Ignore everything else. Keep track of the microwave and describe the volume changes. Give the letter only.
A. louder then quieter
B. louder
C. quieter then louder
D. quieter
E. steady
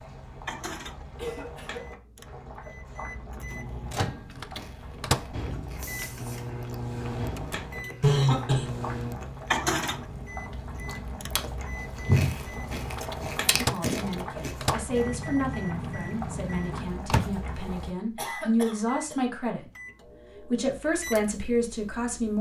A.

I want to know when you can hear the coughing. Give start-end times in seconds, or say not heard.
1.1-1.9, 8.0-8.8, 18.1-19.1.